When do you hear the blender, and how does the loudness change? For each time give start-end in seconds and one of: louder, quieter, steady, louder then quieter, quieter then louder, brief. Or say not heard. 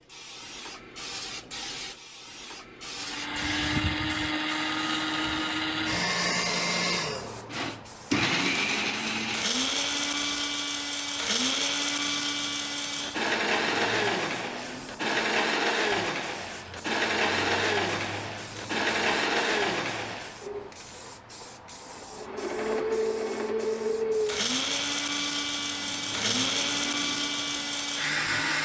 3.0-20.7 steady
22.1-28.6 steady.